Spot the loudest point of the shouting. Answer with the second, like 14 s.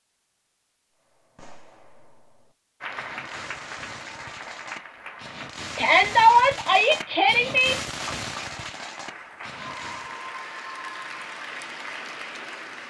6 s.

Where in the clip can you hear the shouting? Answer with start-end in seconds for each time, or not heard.
5.8-7.8.